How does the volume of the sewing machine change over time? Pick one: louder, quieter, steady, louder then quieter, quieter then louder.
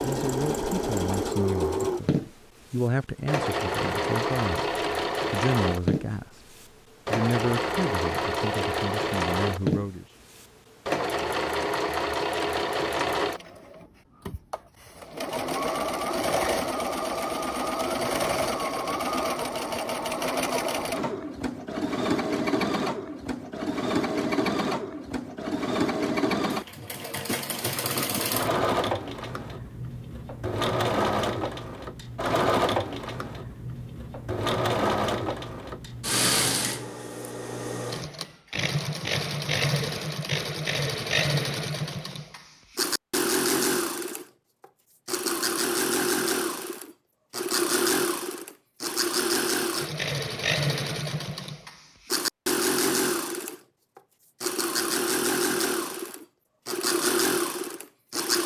steady.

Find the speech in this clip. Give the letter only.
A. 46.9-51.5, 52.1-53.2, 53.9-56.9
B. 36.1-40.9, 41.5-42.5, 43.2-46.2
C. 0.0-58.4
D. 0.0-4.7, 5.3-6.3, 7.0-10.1
D.